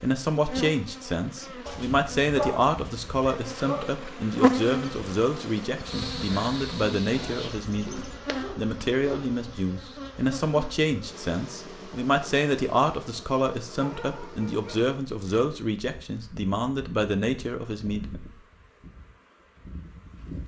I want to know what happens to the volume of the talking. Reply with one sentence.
The loudness of the talking stays about the same.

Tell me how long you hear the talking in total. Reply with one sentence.
You can hear the talking for 18 seconds altogether.